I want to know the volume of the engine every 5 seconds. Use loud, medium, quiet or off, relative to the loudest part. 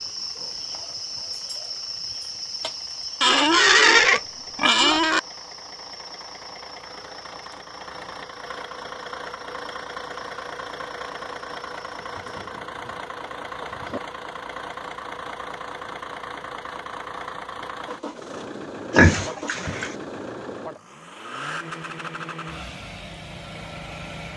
quiet, loud, loud, loud, loud.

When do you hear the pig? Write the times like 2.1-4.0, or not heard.
3.2-5.2, 12.1-14.0, 18.9-19.9.